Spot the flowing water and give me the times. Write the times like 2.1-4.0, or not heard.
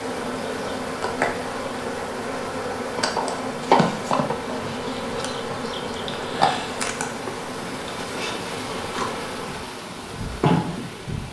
0.0-11.2.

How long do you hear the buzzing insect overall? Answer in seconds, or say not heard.
11 s.